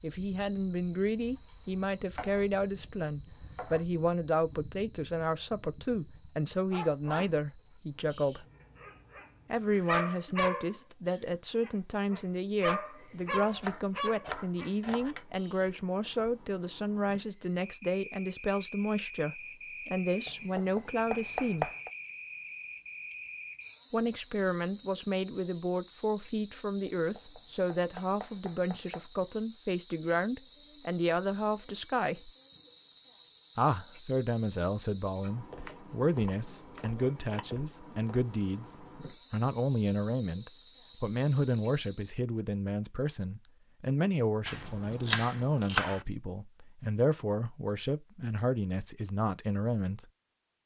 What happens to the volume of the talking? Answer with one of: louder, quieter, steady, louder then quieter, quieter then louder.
steady.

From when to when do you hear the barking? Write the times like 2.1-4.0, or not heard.
6.7-7.4, 8.1-15.7.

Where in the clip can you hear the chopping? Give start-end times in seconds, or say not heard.
1.1-3.9, 13.3-15.2, 20.2-21.9, 26.9-29.1, 35.6-37.5, 44.5-46.0.